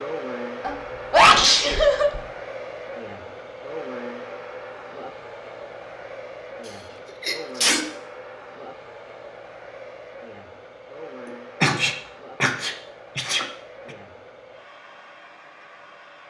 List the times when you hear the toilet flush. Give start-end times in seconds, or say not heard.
not heard.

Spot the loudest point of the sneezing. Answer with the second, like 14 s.
1 s.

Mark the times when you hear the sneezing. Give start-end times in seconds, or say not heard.
0.6-2.2, 7.2-7.8, 11.6-13.4.